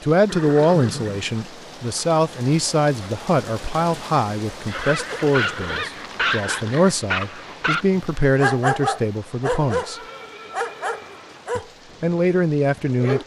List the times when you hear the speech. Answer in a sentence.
You can hear the speech from 0.0 to 10.0 s and from 11.6 to 13.2 s.